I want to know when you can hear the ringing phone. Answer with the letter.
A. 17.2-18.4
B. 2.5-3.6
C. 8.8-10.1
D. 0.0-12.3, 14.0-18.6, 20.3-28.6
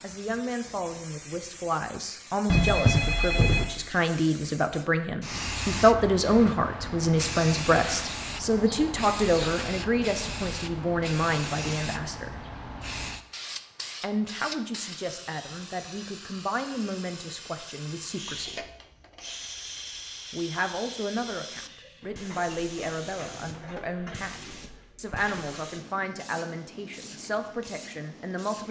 B.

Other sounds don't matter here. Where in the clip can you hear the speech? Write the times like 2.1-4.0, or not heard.
0.0-12.3, 14.0-18.6, 20.3-28.6.